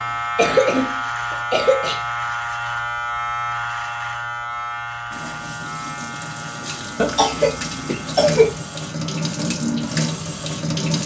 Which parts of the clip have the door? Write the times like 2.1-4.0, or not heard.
not heard.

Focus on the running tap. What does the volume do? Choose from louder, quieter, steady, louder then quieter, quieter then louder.
louder.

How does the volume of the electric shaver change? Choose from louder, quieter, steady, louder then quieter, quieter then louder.
quieter.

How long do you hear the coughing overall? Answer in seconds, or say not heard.
3 s.